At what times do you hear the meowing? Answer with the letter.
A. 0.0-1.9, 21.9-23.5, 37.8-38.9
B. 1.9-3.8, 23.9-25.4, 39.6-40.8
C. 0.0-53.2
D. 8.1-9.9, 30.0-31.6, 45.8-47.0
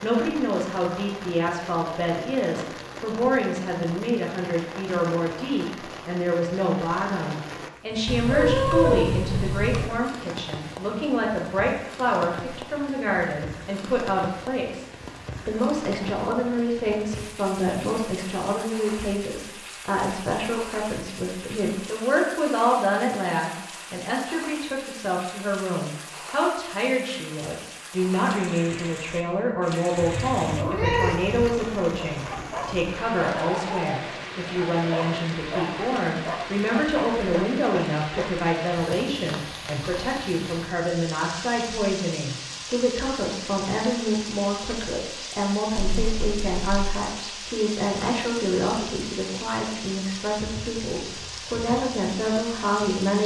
D.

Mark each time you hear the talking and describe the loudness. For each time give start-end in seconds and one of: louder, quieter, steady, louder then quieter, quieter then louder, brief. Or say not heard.
0.0-53.2 steady.